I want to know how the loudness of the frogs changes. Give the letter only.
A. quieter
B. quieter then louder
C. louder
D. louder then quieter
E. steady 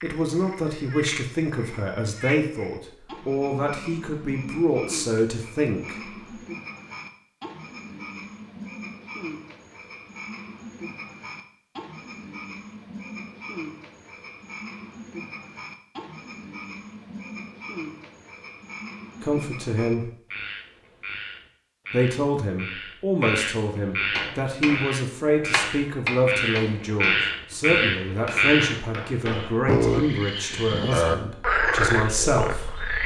C.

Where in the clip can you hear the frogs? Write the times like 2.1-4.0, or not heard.
0.0-33.0.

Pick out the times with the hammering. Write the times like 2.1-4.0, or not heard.
24.1-29.6.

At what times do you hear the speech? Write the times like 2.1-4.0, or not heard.
0.0-6.0, 19.2-20.1, 21.9-32.9.